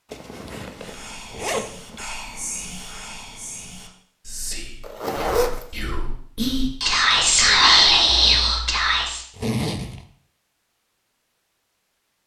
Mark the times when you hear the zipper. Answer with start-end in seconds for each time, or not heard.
0.1-2.0, 4.8-5.7, 9.3-10.1.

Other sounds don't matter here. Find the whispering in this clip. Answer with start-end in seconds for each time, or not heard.
0.8-9.2.